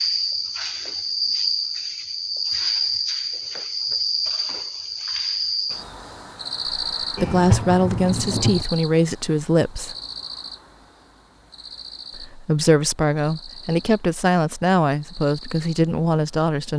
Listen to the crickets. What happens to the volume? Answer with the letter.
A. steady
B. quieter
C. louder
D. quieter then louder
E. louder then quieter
B.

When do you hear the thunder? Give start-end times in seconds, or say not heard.
7.2-8.7.